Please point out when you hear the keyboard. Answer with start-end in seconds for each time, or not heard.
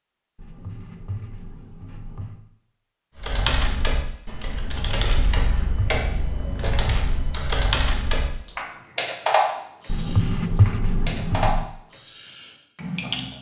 3.1-13.3.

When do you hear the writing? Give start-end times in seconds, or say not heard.
0.3-2.4, 5.3-7.2, 9.8-11.7.